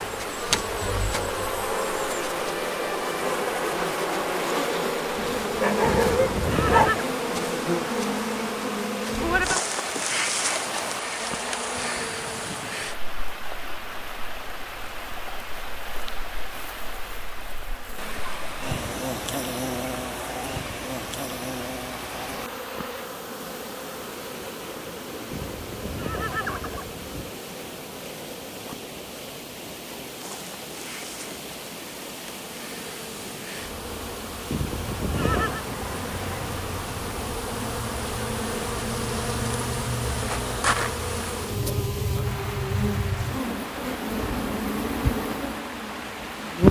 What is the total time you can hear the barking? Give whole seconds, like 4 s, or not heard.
2 s.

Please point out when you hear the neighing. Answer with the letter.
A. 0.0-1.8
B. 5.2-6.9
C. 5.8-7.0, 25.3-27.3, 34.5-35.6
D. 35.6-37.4
C.